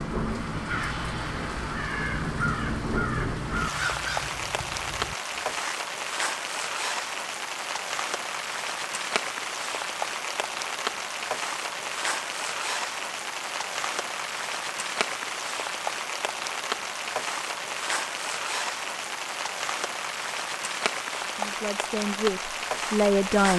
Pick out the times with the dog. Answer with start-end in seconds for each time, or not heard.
not heard.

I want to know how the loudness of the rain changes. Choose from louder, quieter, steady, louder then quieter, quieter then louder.
steady.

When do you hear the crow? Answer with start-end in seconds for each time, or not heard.
0.7-5.8.